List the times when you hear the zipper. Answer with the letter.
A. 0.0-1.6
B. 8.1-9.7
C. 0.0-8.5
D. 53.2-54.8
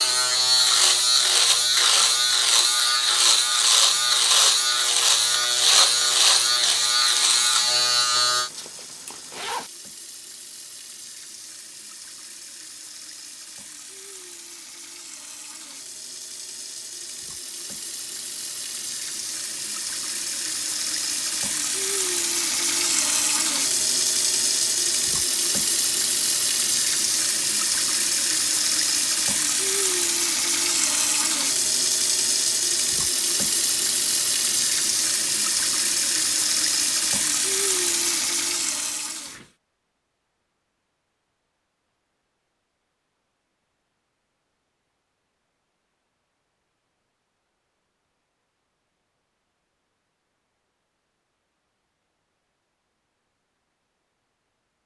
B.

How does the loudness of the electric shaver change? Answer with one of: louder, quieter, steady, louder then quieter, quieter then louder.
steady.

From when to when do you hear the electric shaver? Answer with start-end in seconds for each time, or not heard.
0.0-8.5.